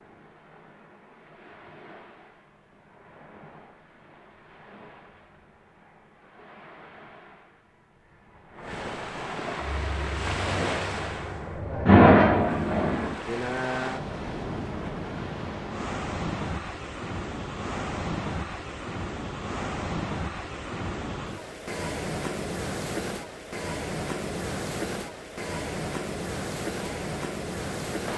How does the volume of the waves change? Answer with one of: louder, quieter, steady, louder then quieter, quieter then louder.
louder.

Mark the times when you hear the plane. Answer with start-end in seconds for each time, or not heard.
9.6-13.2.